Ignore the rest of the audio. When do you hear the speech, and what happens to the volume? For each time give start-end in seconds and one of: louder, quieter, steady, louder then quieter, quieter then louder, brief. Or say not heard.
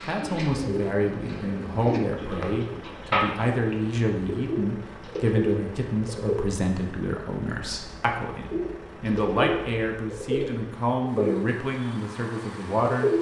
0.0-13.1 steady.